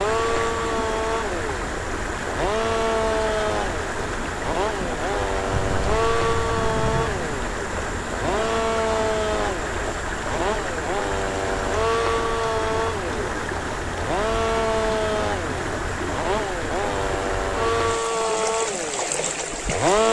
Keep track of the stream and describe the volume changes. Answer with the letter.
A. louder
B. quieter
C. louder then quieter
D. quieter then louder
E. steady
E.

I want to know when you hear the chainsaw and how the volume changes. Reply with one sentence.
The chainsaw can be heard from 0.0 to 20.0 s, at a steady volume.